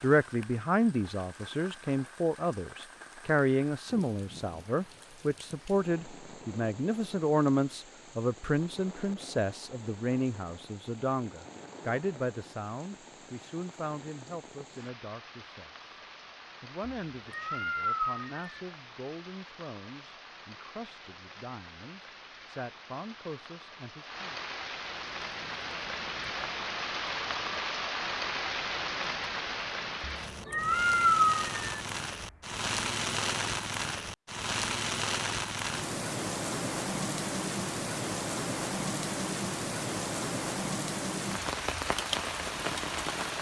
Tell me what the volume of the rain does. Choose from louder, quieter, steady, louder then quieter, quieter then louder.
louder.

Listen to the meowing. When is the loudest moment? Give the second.
31 s.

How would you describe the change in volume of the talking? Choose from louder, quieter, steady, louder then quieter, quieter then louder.
quieter.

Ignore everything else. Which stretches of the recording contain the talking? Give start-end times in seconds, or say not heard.
0.0-15.8, 16.6-24.4.